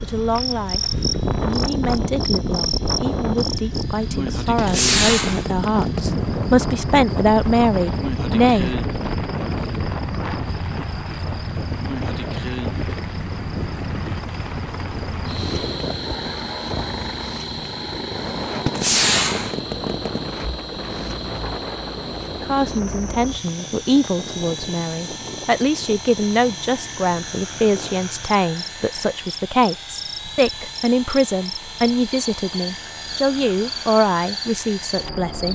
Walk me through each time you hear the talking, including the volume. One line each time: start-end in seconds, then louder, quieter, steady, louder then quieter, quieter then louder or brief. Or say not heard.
0.0-0.8 brief
1.4-8.8 louder
22.4-35.5 steady.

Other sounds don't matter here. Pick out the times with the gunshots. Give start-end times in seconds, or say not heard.
4.5-6.2, 18.6-20.2.